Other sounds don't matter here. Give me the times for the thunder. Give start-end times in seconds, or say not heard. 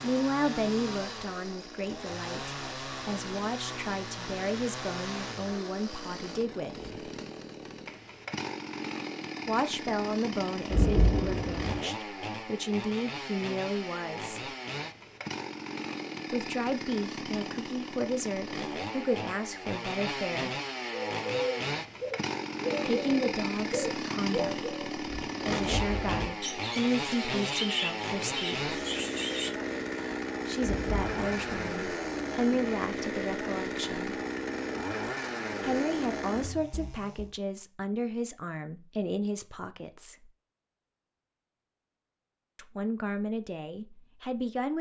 10.7-11.8, 30.6-31.7.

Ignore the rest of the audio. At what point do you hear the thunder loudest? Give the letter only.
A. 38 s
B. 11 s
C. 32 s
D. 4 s
B.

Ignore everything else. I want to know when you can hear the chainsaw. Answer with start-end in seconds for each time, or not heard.
0.0-37.4.